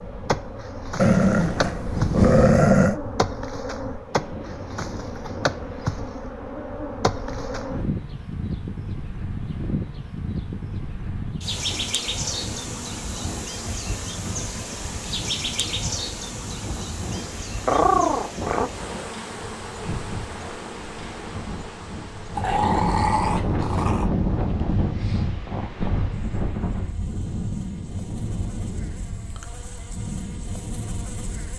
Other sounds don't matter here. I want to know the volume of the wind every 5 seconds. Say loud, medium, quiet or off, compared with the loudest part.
quiet, quiet, medium, medium, loud, loud, medium.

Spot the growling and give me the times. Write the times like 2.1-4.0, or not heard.
0.9-3.0, 17.6-18.7, 22.4-24.1.